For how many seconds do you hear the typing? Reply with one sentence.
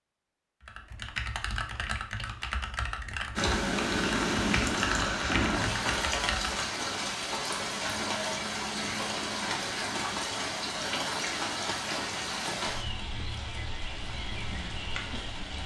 You can hear the typing for 6 seconds altogether.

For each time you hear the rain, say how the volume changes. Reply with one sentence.
The rain can be heard from 3.4 to 15.6 s, getting quieter.